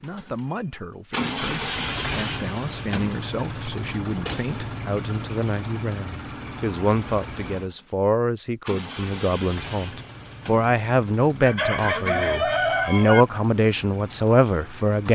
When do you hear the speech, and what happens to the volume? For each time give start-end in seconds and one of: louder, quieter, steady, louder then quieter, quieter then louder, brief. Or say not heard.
0.0-15.1 louder.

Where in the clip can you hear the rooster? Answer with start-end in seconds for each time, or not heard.
11.4-13.2.